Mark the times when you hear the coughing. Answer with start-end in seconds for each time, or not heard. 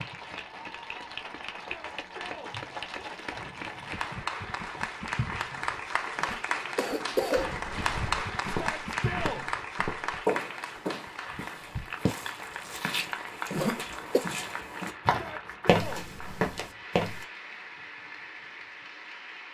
6.2-7.5, 13.5-14.2.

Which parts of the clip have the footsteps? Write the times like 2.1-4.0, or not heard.
7.3-17.2.